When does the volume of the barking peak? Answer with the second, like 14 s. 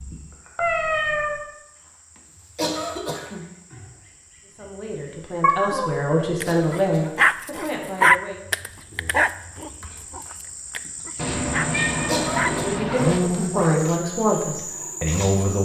8 s.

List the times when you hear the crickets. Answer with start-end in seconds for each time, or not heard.
0.0-15.6.